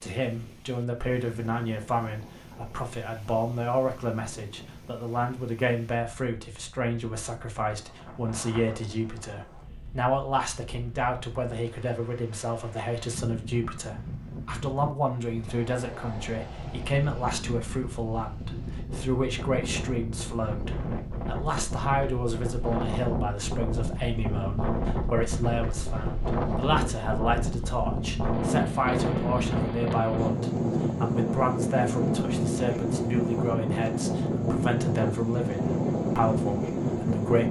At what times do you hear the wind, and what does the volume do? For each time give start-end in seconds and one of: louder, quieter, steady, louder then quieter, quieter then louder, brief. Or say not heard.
0.0-37.4 louder.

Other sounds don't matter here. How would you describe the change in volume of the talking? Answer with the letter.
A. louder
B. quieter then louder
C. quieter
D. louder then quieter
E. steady
E.